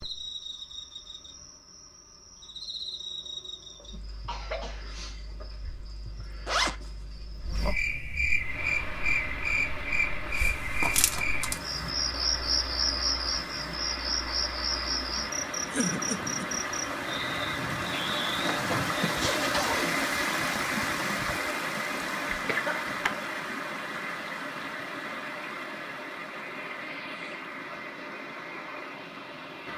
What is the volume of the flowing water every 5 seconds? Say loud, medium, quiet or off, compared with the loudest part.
off, medium, medium, loud, loud, medium.